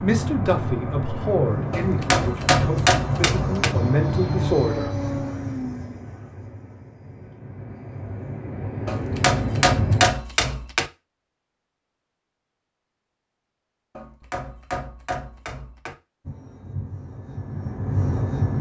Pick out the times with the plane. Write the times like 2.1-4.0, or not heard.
0.0-10.1, 16.2-18.5.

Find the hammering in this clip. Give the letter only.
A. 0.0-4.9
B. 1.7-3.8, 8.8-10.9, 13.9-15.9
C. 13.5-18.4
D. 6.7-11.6
B.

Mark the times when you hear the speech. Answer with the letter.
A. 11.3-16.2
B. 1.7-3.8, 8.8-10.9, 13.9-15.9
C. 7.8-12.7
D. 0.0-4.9
D.